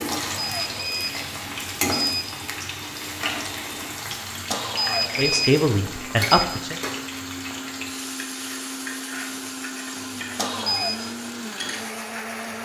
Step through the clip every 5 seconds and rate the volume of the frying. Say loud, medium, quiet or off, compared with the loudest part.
loud, loud, medium.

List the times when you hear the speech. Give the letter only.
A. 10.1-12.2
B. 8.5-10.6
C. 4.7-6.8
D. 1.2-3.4
C.